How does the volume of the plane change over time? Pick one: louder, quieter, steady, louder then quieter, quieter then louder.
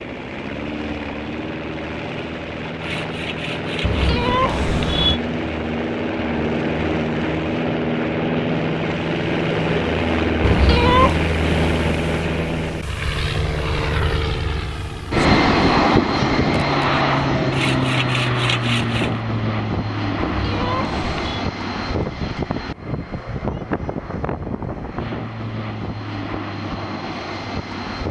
louder then quieter.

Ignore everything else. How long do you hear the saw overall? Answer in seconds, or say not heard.
3 s.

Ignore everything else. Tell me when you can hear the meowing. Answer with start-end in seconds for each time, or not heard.
3.8-5.2, 10.4-11.2, 20.1-21.4.